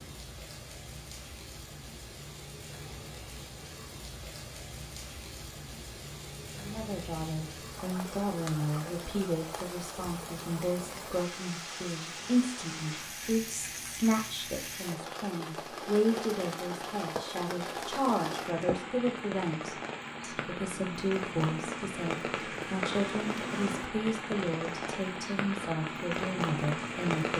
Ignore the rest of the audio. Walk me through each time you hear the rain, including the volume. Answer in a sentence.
The rain can be heard from 0.0 to 27.3 s, getting louder.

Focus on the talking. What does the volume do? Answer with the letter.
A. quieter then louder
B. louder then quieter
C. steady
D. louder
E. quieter
C.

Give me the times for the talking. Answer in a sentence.
You can hear the talking from 6.5 to 27.3 s.